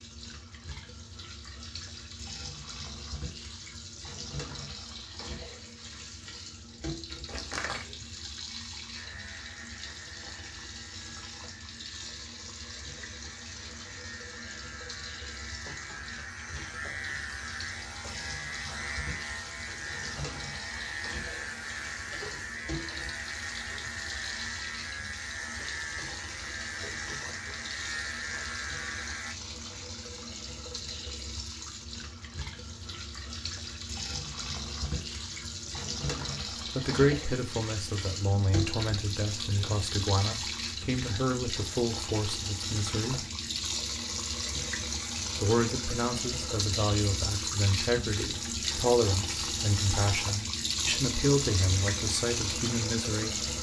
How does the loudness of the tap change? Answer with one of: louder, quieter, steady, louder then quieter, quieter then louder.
louder.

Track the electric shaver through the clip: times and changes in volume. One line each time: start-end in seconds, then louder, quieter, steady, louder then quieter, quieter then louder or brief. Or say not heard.
8.9-29.4 louder.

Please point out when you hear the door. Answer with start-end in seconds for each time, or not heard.
7.2-7.8.